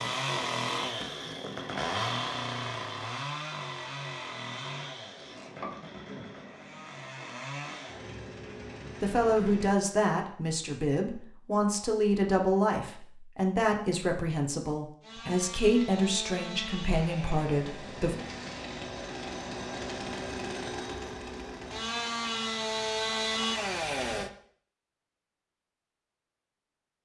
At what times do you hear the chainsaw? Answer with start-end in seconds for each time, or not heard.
0.0-9.8, 15.0-24.3.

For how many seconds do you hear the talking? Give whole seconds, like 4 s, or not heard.
9 s.